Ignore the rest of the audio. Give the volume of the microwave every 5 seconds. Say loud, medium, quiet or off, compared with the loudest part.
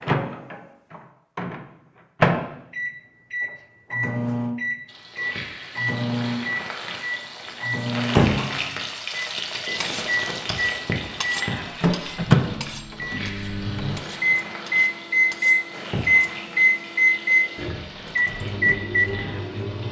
loud, medium, loud, loud.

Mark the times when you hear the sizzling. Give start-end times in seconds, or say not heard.
4.8-19.8.